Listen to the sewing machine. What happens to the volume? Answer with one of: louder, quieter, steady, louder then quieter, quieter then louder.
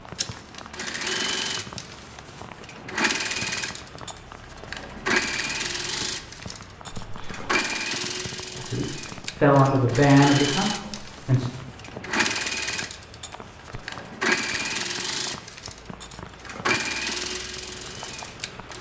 steady.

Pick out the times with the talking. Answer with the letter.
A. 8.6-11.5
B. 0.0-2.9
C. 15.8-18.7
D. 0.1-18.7
A.